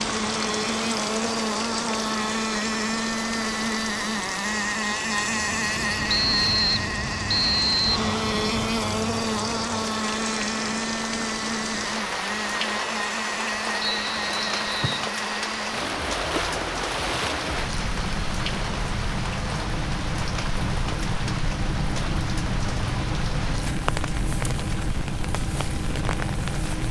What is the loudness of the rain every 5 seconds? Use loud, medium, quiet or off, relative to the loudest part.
loud, loud, loud, loud, loud, medium.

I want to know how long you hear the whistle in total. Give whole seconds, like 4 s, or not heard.
3 s.